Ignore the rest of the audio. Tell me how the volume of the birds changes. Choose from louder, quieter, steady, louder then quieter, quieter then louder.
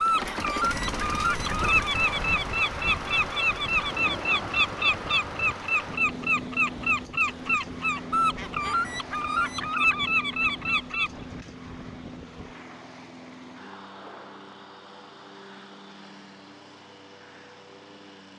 steady.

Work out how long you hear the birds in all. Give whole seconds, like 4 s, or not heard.
11 s.